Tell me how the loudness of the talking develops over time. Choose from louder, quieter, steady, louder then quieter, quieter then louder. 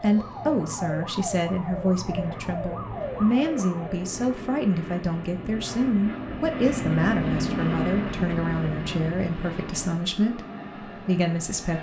steady.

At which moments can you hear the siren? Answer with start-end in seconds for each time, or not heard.
0.0-4.2.